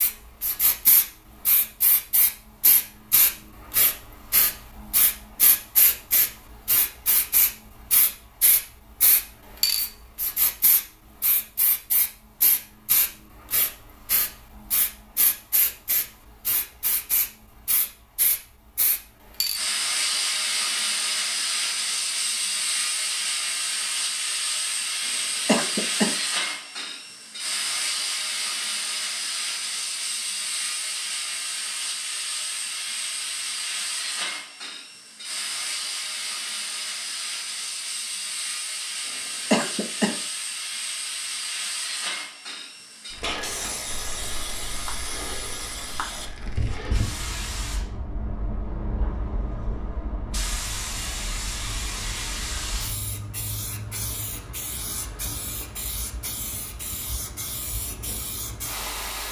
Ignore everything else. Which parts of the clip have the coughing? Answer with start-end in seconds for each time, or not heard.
25.1-26.1, 39.0-40.1.